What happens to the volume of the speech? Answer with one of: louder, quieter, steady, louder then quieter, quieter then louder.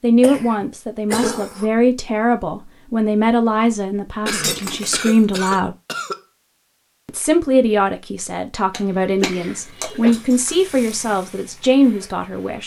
steady.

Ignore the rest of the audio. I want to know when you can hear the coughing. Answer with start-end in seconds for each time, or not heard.
0.2-1.7, 4.2-6.2, 9.2-10.2.